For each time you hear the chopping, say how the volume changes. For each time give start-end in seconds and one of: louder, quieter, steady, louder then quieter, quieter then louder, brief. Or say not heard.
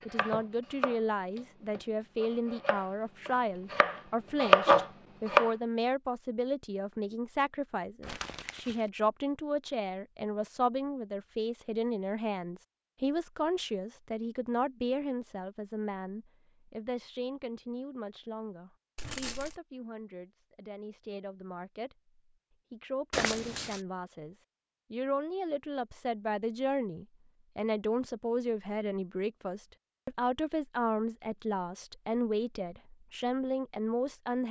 0.1-5.5 quieter then louder.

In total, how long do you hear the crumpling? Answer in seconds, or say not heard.
2 s.